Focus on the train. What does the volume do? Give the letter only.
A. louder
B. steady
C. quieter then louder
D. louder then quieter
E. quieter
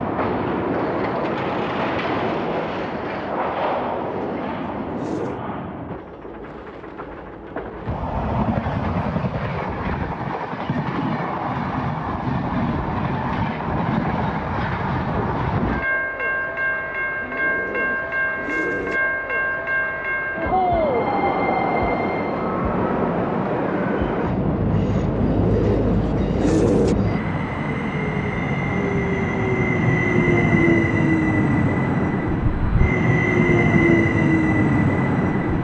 A.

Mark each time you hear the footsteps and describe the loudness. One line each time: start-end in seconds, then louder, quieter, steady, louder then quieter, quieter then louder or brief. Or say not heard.
not heard.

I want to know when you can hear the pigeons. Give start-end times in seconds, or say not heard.
3.9-5.4, 17.1-19.0, 25.1-26.9.